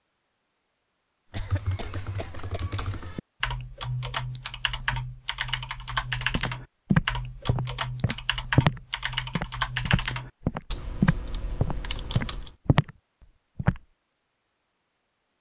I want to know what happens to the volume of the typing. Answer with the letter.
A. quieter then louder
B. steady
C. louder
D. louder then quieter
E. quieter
D.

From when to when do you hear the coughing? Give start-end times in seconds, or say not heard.
1.3-2.8.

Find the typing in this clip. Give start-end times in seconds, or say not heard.
1.3-12.6.